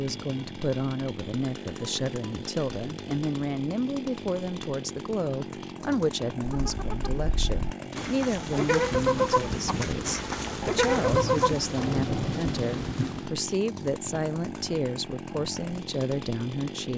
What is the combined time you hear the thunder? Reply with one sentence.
The thunder can be heard for 5 seconds in total.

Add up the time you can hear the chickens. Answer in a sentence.
The chickens can be heard for 5 seconds in total.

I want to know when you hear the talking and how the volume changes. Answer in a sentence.
The talking can be heard from 0.0 to 16.9 s, at a steady volume.